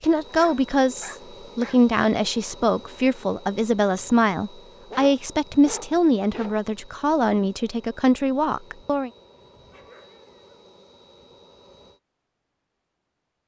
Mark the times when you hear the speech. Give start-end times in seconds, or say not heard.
0.0-9.1.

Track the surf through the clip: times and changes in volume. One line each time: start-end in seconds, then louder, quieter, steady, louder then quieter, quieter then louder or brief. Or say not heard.
not heard.